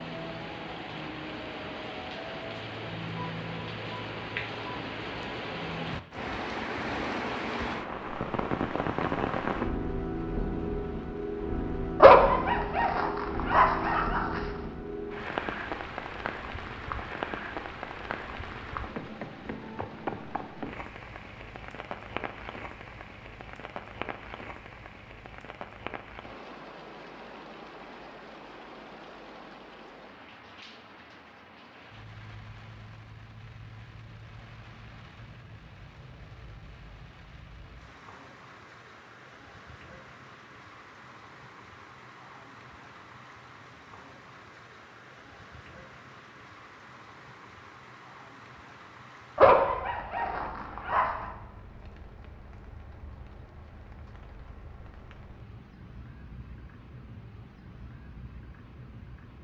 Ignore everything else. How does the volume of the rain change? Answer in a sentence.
The volume of the rain goes down.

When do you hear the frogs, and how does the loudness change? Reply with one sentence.
You can't hear the frogs here.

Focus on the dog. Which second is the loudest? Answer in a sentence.
The loudest moment of the dog is at 12 seconds.